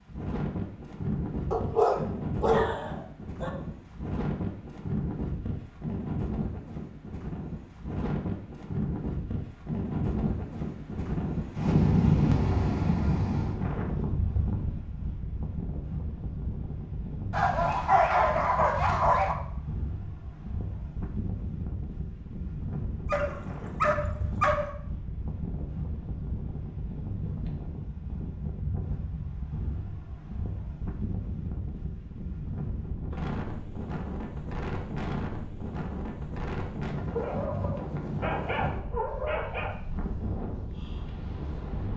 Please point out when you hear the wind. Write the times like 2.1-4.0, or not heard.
0.0-41.9.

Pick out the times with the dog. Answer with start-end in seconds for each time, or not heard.
1.5-3.5, 17.3-19.4, 23.1-24.7, 37.1-39.8.